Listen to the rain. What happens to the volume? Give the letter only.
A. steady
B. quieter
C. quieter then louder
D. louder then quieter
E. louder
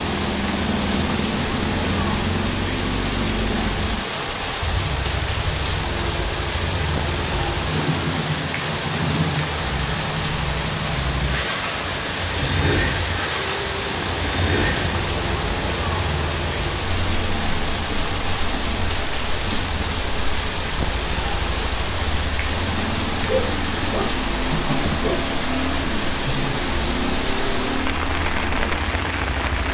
A.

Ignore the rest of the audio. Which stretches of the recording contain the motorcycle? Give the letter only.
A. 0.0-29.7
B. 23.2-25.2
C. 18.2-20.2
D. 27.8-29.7
A.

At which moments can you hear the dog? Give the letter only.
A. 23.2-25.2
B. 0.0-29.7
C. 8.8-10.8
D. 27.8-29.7
A.